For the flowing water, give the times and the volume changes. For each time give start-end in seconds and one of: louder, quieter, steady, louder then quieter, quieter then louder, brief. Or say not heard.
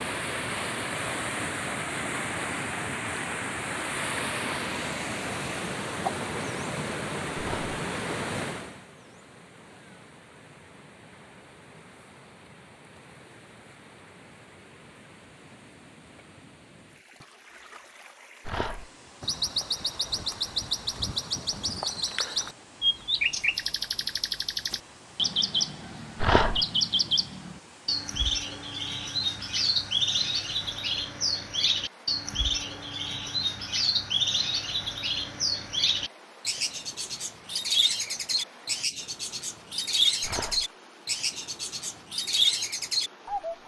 0.0-43.6 quieter.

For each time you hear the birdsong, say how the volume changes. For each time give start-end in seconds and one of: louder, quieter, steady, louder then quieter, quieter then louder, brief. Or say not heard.
19.2-43.6 steady.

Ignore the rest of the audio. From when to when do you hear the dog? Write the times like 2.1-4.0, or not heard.
7.3-7.8, 18.4-18.9, 26.2-26.6, 40.2-40.6.